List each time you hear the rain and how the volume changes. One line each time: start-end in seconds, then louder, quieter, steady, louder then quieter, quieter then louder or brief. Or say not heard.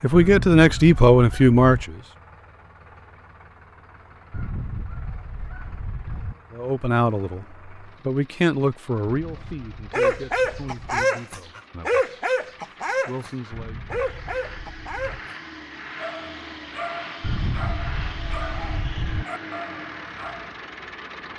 not heard.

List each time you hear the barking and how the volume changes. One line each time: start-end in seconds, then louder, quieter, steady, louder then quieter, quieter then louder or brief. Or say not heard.
9.9-20.6 quieter.